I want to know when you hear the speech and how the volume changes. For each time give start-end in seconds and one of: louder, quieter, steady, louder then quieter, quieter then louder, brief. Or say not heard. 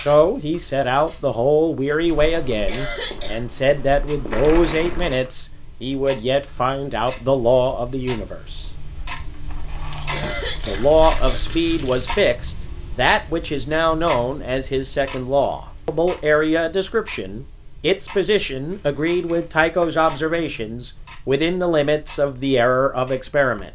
0.0-8.7 steady
10.7-23.7 steady.